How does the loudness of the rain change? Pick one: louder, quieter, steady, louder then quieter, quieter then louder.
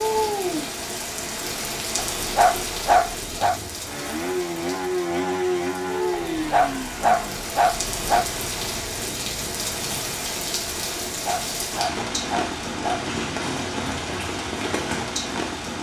quieter then louder.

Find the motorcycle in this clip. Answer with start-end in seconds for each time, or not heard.
3.4-10.2.